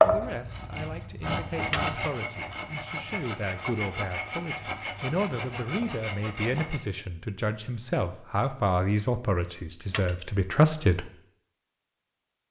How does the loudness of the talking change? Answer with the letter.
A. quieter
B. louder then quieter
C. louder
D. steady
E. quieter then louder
C.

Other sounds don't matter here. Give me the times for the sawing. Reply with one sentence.
You can hear the sawing from 0.0 to 6.8 s.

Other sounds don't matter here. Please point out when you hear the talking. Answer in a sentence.
You can hear the talking from 0.1 to 11.1 s.